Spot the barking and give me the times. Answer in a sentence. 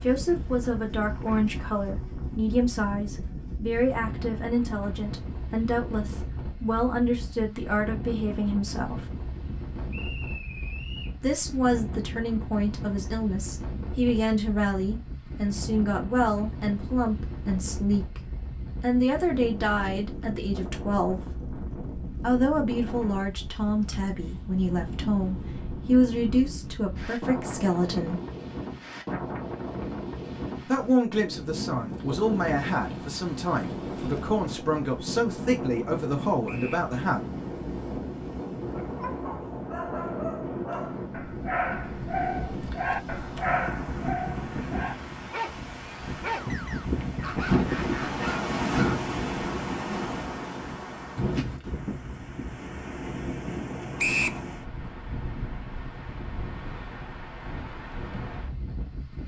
The barking can be heard from 38.8 to 49.0 s.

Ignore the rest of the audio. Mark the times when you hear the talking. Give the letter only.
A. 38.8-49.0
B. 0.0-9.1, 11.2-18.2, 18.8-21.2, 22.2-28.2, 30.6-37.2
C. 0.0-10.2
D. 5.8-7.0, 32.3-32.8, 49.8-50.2
B.